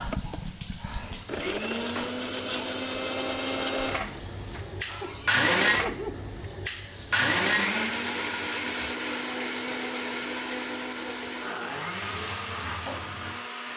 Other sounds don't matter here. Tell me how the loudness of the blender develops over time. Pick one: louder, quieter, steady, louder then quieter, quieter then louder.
louder then quieter.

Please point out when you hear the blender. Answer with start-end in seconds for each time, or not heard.
0.0-13.7.